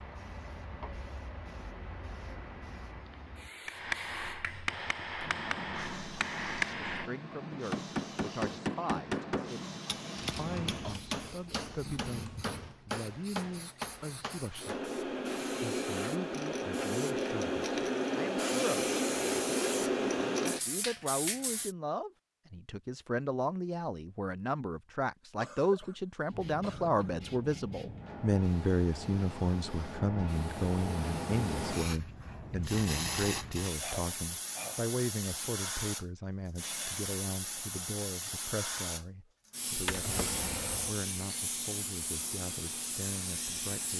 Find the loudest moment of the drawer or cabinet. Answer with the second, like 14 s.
40 s.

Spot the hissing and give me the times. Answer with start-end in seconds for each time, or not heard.
0.0-21.8, 26.2-43.9.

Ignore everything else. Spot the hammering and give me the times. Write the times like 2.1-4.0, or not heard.
3.6-14.8.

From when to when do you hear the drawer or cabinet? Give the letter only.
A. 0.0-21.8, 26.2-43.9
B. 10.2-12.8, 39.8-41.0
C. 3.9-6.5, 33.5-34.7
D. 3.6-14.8
B.